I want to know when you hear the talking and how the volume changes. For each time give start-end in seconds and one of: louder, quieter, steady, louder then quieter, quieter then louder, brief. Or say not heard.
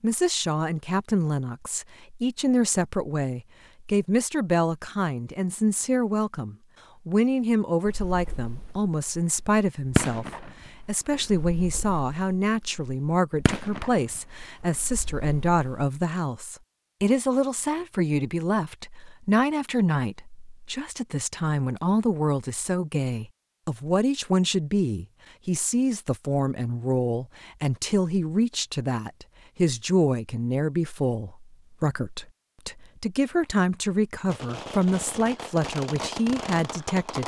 0.0-37.2 steady.